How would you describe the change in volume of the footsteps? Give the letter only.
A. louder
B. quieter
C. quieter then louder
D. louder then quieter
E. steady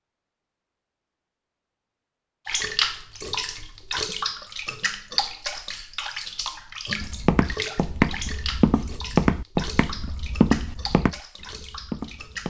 B.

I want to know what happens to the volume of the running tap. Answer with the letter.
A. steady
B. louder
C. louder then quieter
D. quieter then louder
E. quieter
E.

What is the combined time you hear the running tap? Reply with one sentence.
You can hear the running tap for 10 seconds altogether.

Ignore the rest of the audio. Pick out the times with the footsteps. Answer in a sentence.
You can hear the footsteps from 7.0 to 12.4 s.